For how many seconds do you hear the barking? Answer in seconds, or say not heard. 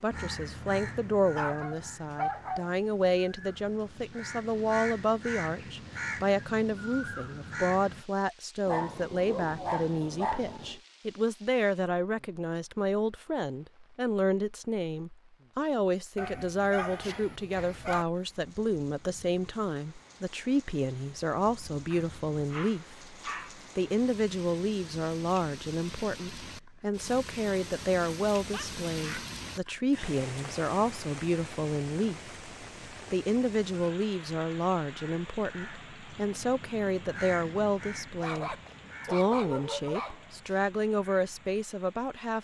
11 s.